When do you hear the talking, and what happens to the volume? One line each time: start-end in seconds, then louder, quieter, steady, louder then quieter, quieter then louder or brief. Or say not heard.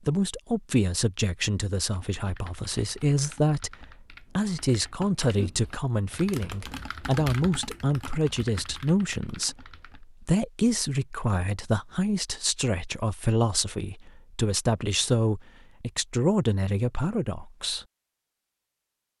0.1-17.9 steady.